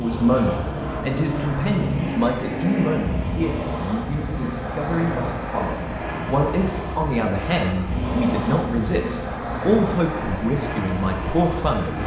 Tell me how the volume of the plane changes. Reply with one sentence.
The volume of the plane stays about the same.